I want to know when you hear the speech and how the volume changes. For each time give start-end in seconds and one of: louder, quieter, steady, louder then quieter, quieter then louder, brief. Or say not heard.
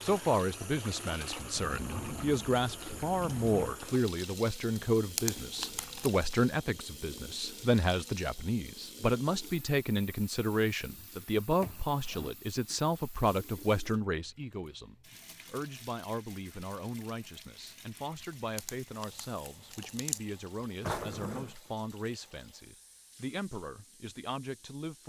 0.0-25.0 quieter.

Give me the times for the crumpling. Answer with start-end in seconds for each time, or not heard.
5.0-6.2, 18.1-20.2.